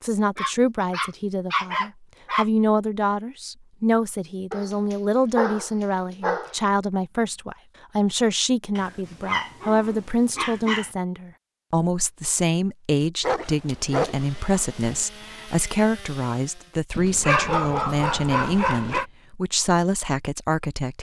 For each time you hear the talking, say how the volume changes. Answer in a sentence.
You can hear the talking from 0.0 to 20.9 s, at a steady volume.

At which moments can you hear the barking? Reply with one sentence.
The barking can be heard from 0.3 to 2.5 s, from 4.5 to 6.5 s, from 8.8 to 10.9 s, from 13.2 to 15.1 s and from 16.9 to 19.1 s.